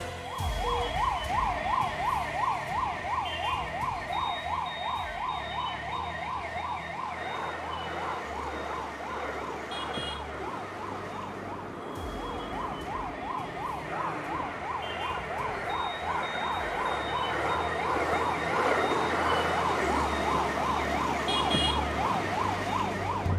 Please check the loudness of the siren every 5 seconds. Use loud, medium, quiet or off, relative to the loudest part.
loud, medium, medium, loud, loud.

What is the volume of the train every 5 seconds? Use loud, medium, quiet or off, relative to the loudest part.
off, medium, medium, loud, loud.